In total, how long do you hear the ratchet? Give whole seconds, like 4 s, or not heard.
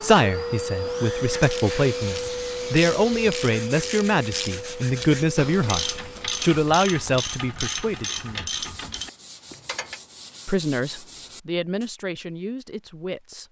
9 s.